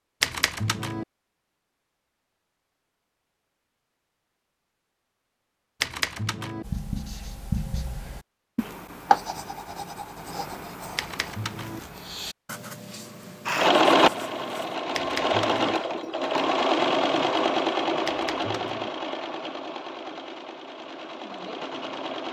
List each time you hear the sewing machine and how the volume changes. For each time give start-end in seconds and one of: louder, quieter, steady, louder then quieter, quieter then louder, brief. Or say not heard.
13.4-22.2 quieter.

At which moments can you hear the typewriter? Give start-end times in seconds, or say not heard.
0.2-1.1, 5.8-6.7, 10.9-11.8, 14.9-15.8, 18.1-18.9.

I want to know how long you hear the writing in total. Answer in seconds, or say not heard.
8 s.